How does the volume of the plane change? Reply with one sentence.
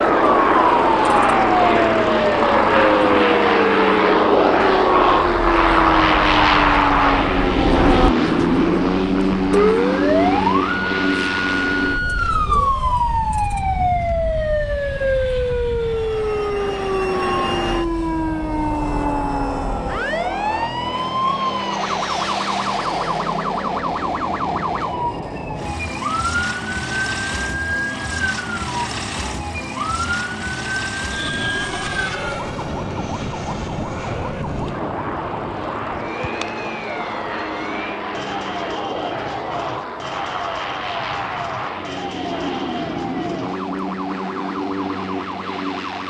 The volume of the plane goes down.